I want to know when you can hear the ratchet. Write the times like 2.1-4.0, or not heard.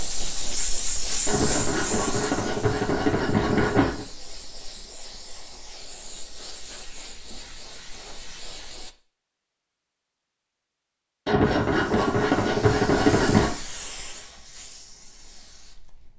1.2-4.0, 11.2-13.5.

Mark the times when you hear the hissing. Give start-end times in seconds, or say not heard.
0.0-8.9, 11.7-16.1.